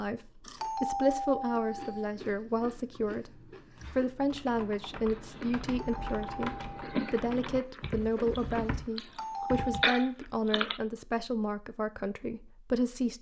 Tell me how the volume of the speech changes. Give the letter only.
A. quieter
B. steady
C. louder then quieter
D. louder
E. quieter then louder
B.